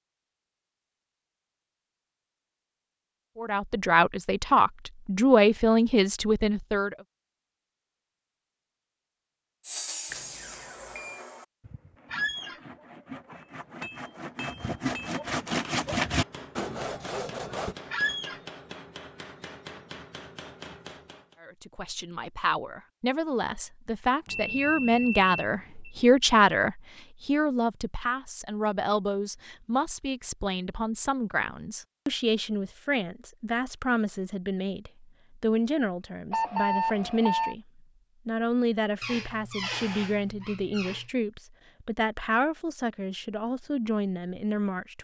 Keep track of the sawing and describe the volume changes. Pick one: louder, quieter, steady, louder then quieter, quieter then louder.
quieter then louder.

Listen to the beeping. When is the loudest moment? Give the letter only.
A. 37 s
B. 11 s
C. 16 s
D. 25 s
A.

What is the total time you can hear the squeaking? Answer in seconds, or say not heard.
3 s.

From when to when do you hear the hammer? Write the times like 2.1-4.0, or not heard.
13.6-21.4.